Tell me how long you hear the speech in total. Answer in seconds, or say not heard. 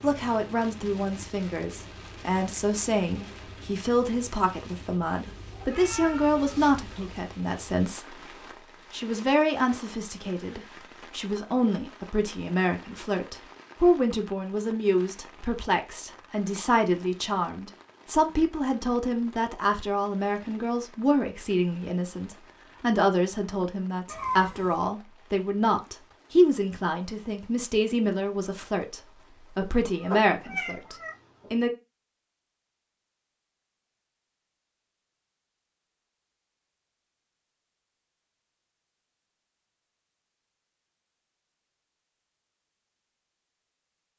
31 s.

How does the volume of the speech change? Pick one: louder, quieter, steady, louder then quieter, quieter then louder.
steady.